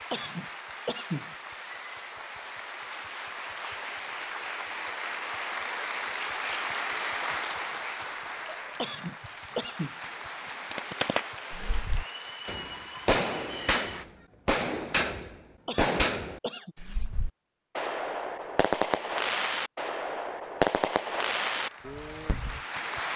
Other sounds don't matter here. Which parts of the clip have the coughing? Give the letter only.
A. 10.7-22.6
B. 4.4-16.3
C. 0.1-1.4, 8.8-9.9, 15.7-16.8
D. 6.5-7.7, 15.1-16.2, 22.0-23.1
C.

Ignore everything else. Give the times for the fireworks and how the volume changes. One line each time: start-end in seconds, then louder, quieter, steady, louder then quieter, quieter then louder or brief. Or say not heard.
10.7-22.6 steady.